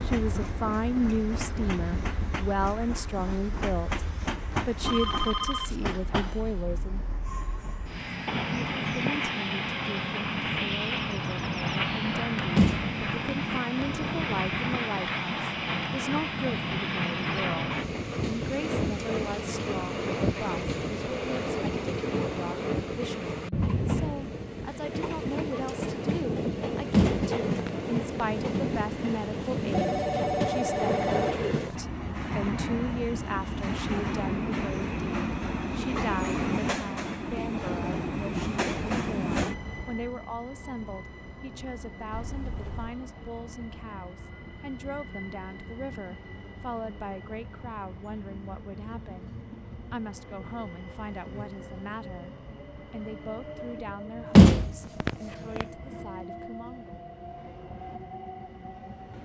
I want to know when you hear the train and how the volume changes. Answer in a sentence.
You can hear the train from 0.0 to 59.1 s, getting quieter.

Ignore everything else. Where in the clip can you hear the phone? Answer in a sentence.
The phone can be heard from 4.8 to 5.8 s, from 29.7 to 31.5 s and from 42.1 to 43.0 s.